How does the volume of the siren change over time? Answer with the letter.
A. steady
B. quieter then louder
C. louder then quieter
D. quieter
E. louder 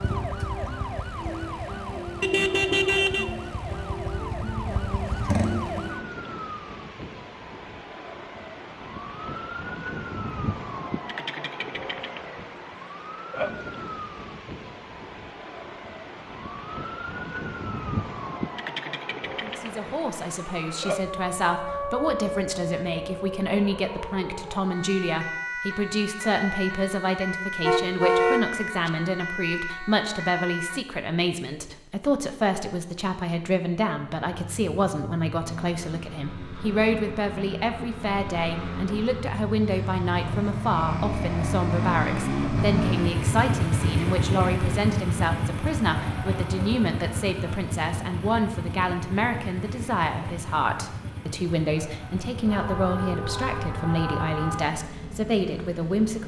A.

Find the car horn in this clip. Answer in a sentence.
You can hear the car horn from 2.2 to 3.3 s, from 27.6 to 28.9 s and from 52.5 to 54.8 s.